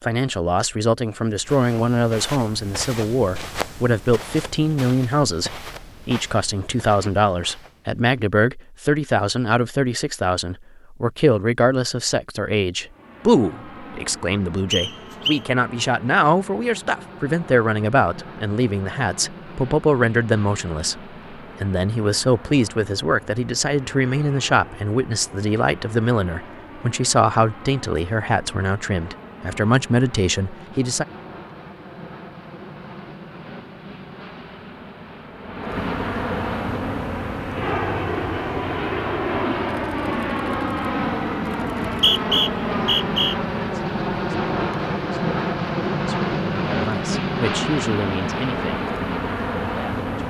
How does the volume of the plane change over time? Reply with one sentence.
The volume of the plane goes up.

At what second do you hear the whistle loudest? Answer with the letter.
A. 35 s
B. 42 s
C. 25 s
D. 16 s
B.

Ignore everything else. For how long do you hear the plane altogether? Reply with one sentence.
You can hear the plane for 37 seconds altogether.